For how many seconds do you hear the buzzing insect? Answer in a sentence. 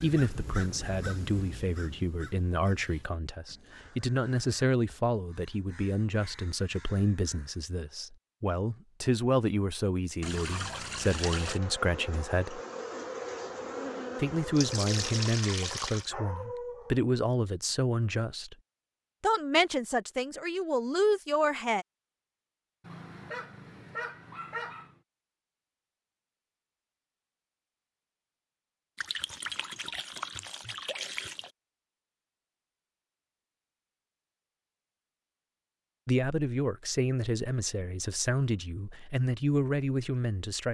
The buzzing insect can be heard for 4 seconds in total.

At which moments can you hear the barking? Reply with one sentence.
You can hear the barking from 15.9 to 17.1 s and from 22.8 to 24.9 s.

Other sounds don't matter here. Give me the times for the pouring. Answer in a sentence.
You can hear the pouring from 10.2 to 11.6 s, from 14.6 to 16.1 s and from 28.9 to 31.5 s.